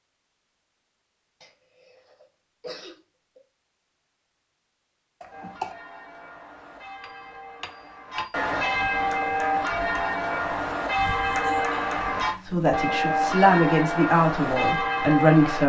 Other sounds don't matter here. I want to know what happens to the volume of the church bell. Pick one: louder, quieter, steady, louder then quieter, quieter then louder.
louder.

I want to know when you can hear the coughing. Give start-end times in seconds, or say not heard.
1.4-3.4, 5.2-5.8, 11.2-12.0.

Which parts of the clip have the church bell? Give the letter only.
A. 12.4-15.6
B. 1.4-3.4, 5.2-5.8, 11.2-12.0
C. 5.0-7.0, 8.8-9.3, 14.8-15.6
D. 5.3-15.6
D.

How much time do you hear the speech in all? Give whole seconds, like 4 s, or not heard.
3 s.